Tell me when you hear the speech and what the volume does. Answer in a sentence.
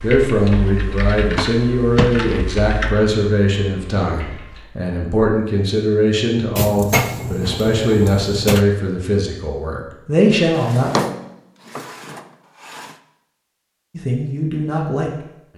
You can hear the speech from 0.0 to 10.9 s, at a steady volume; and briefly from 13.9 to 15.5 s.